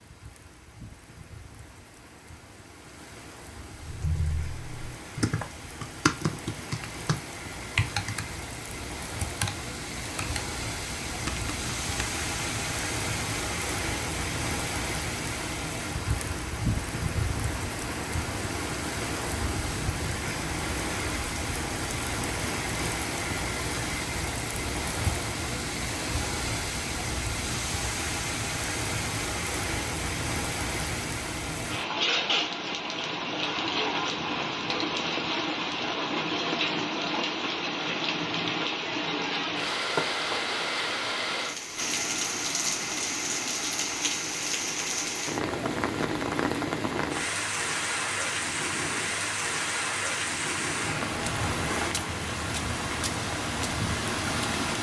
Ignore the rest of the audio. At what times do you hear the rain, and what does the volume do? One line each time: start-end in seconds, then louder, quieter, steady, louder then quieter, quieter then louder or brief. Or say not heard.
0.0-54.7 louder.